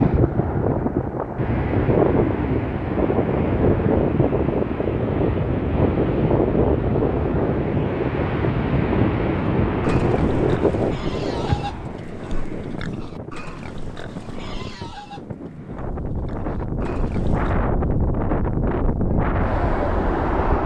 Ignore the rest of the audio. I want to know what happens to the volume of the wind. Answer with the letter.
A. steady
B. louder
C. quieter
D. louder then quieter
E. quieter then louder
E.